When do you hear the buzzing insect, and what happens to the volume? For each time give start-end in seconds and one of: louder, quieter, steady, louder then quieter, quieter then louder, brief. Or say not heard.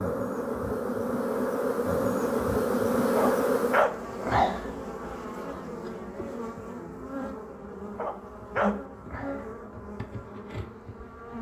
0.0-11.3 quieter.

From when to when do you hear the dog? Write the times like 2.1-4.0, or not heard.
3.1-4.0, 8.0-8.8.